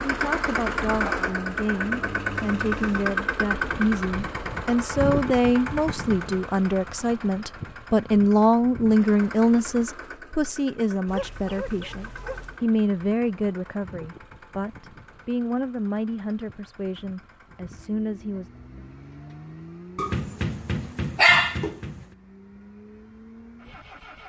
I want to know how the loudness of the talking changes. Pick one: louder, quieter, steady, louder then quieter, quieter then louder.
louder then quieter.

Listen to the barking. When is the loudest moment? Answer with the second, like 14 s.
21 s.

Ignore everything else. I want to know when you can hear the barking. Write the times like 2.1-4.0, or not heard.
1.0-3.0, 11.1-12.6, 19.9-21.9.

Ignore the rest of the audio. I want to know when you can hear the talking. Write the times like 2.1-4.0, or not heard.
0.1-18.5.